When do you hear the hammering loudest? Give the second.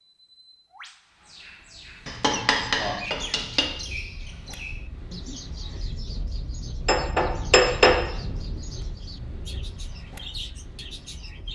8 s.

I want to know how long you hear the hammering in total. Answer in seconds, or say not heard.
3 s.